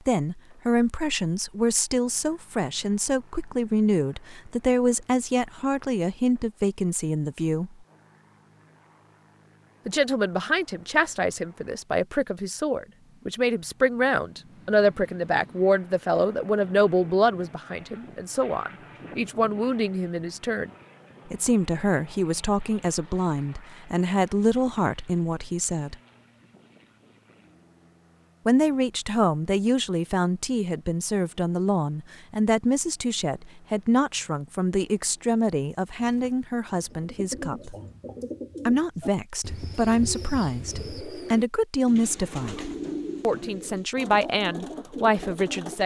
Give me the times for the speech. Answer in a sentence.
You can hear the speech from 0.1 to 7.8 s, from 9.8 to 20.7 s, from 21.3 to 25.9 s, from 28.4 to 37.8 s and from 38.6 to 45.8 s.